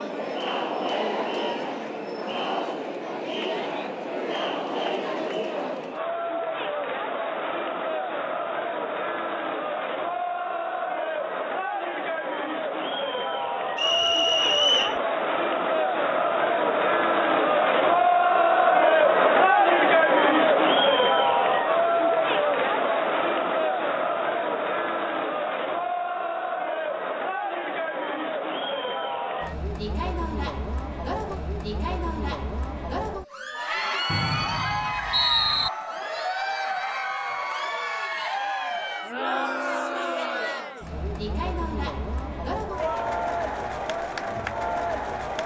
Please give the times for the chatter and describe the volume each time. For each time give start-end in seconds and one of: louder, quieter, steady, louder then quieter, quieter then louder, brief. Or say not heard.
0.0-45.4 louder then quieter.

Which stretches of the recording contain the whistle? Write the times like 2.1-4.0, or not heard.
13.8-15.0, 34.0-35.7.